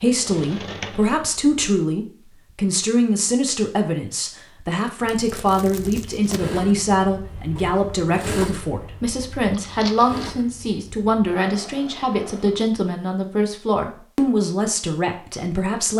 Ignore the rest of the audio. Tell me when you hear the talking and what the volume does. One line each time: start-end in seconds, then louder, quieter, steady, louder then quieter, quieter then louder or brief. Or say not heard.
0.0-15.9 steady.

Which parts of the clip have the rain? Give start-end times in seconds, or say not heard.
not heard.